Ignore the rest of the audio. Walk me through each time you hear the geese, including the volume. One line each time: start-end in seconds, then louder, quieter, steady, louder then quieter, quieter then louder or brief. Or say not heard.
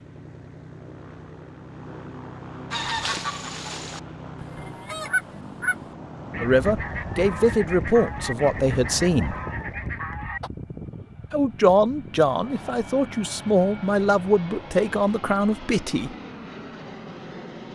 2.7-10.5 steady.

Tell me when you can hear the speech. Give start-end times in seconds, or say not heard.
6.4-9.3, 11.3-16.1.